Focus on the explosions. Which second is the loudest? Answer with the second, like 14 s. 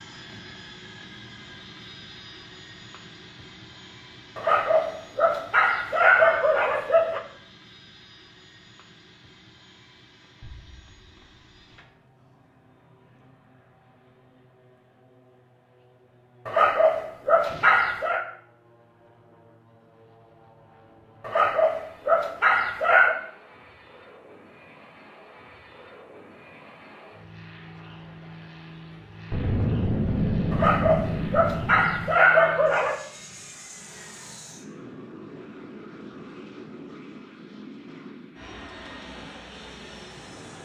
30 s.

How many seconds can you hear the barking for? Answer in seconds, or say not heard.
9 s.